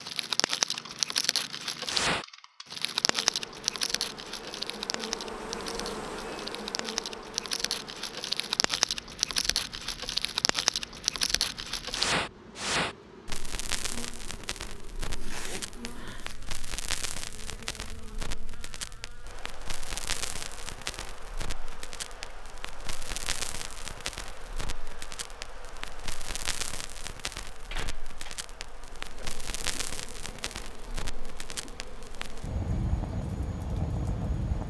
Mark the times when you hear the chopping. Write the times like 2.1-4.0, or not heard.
not heard.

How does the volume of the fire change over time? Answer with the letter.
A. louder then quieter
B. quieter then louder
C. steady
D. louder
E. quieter
E.